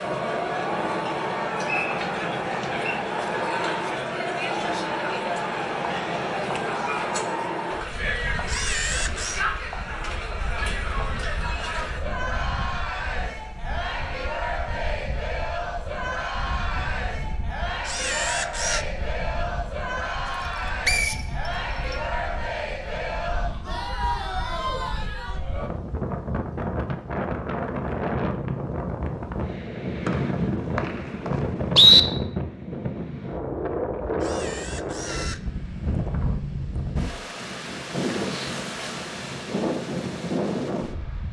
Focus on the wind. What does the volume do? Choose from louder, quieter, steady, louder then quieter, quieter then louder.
quieter then louder.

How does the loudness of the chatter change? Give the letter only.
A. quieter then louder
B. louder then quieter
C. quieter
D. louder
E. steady
E.